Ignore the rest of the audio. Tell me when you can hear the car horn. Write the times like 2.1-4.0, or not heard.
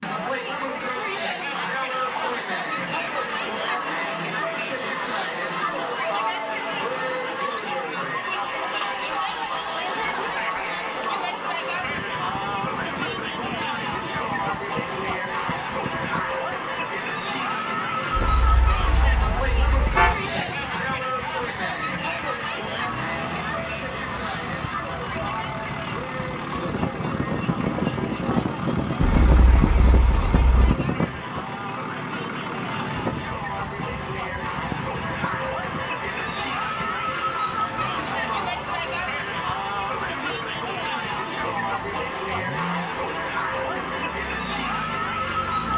18.1-20.1, 29.0-30.8.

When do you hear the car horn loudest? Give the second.
20 s.